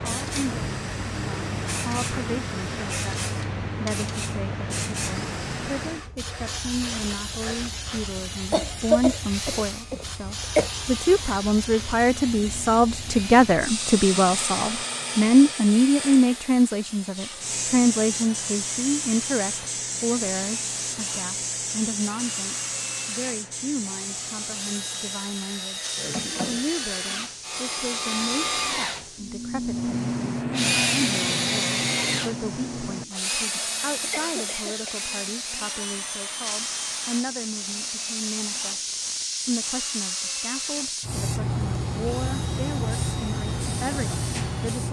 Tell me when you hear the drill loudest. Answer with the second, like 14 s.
31 s.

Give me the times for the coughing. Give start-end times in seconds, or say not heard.
8.5-10.7, 34.0-35.0.